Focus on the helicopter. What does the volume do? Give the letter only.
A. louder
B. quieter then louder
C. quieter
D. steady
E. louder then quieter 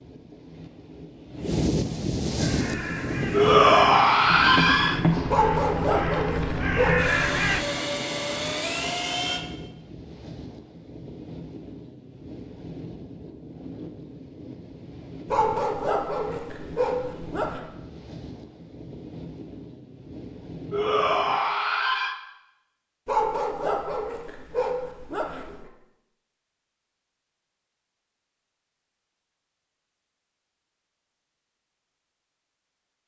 D.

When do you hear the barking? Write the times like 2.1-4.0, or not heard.
5.2-7.2, 15.2-17.6, 23.1-25.6.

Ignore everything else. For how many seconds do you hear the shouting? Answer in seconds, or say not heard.
3 s.